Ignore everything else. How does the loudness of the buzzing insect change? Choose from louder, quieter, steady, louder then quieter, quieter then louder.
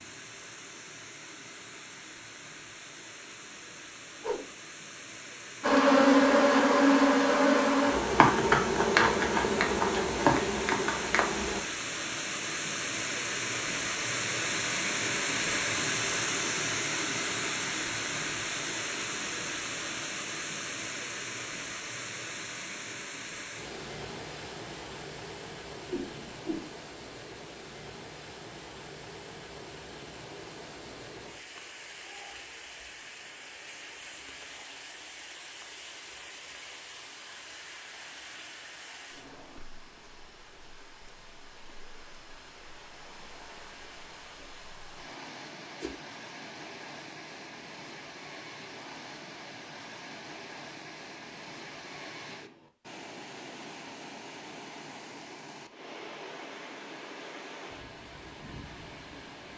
quieter.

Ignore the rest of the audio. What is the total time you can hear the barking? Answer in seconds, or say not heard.
not heard.